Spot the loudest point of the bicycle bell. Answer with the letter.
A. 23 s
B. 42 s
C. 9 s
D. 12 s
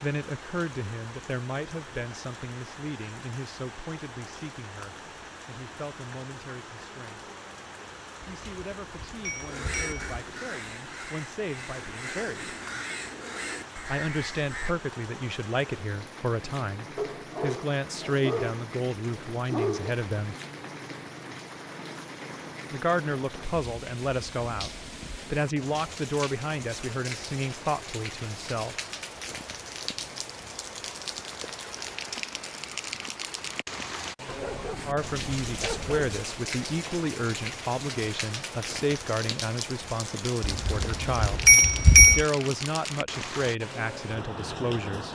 B.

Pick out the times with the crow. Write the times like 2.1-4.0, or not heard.
9.4-14.8.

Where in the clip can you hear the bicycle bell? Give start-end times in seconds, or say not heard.
8.2-10.2, 40.4-42.2.